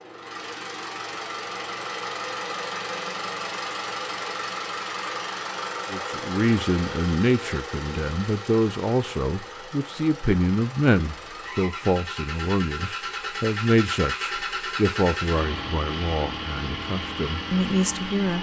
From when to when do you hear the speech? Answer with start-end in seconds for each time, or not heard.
5.9-18.3.